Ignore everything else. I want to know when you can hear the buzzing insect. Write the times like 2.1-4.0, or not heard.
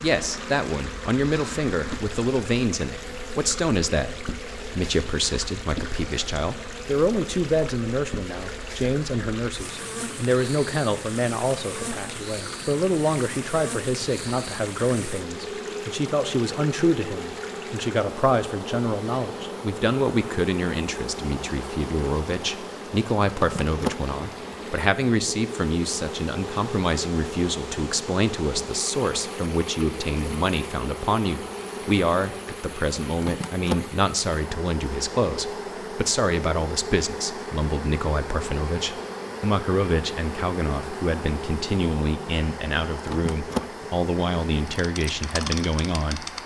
0.0-46.4.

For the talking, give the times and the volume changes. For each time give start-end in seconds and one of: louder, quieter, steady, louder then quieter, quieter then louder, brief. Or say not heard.
0.0-46.2 steady.